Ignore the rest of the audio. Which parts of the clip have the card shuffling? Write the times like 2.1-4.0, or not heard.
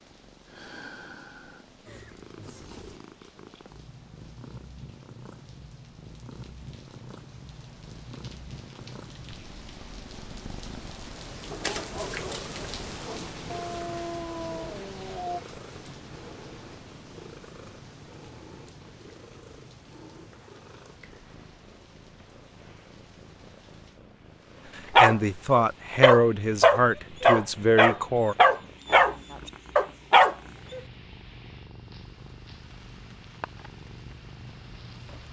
11.6-12.6.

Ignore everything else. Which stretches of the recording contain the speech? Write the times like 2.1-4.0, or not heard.
24.8-28.4.